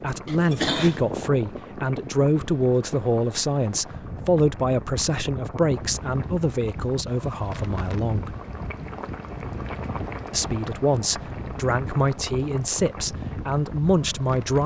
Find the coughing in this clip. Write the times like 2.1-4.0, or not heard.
0.2-1.1.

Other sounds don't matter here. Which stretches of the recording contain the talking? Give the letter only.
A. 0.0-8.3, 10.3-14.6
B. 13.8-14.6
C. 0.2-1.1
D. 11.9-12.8
A.